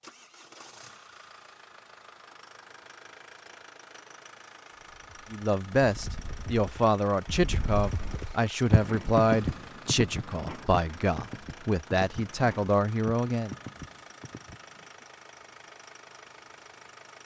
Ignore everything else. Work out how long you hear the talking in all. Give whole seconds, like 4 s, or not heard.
8 s.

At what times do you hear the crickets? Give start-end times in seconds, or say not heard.
not heard.